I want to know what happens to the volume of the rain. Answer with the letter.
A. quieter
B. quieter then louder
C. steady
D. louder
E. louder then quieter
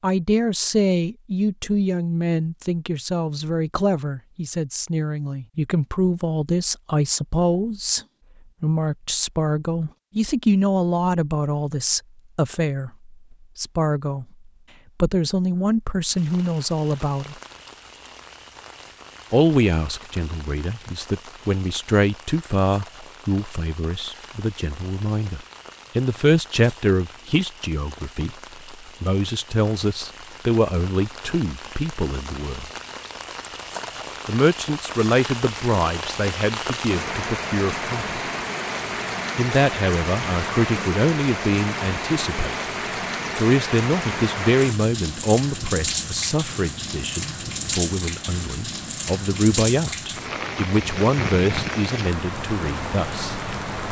D.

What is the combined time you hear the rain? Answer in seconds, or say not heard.
38 s.